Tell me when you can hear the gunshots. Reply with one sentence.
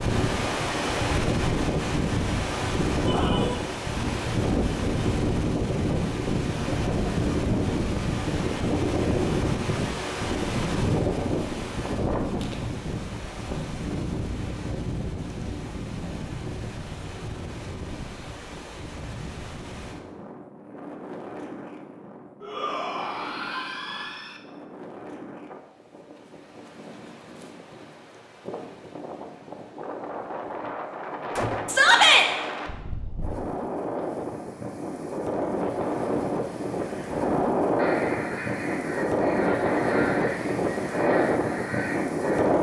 You can hear the gunshots from 31.4 to 31.9 s.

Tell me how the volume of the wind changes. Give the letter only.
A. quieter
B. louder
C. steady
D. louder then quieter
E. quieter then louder
E.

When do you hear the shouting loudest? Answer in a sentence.
The volume of the shouting peaks at 32 seconds.